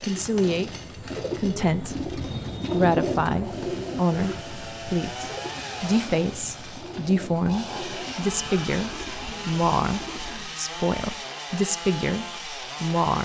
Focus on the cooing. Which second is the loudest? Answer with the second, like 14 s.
3 s.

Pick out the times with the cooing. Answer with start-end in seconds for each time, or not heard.
0.0-10.6.